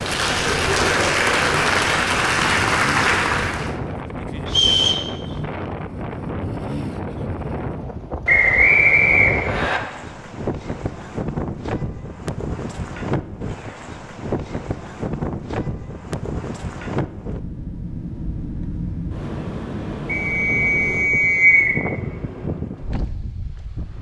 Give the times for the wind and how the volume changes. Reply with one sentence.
You can hear the wind from 0.0 to 23.9 s, at a steady volume.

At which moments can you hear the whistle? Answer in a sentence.
The whistle can be heard from 4.5 to 5.0 s, from 8.2 to 9.8 s and from 20.1 to 21.8 s.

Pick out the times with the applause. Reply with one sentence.
The applause can be heard from 0.0 to 3.8 s.